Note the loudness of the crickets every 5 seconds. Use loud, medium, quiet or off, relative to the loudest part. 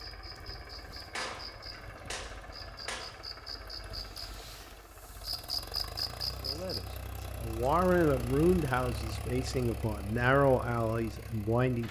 medium, loud, off.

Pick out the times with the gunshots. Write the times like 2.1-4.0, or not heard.
1.1-3.1.